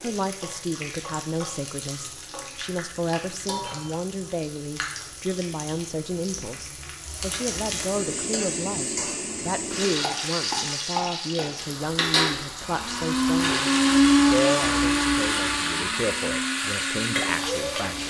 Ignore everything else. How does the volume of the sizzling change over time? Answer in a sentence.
The loudness of the sizzling goes up.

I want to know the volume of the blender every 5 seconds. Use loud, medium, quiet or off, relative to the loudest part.
off, off, loud, medium.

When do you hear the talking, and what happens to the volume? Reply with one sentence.
The talking can be heard from 0.0 to 18.0 s, at a steady volume.